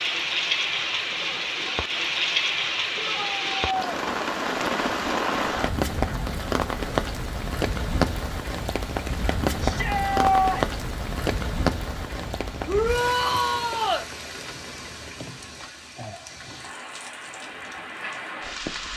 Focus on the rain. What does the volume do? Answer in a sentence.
The loudness of the rain goes down.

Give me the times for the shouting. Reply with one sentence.
The shouting can be heard from 3.0 to 4.0 s, from 9.6 to 10.8 s and from 12.7 to 14.1 s.